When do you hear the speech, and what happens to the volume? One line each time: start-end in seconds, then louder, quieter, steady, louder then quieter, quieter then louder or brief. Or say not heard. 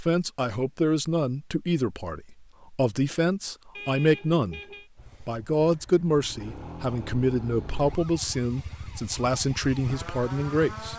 0.0-4.6 quieter then louder
5.2-10.9 steady.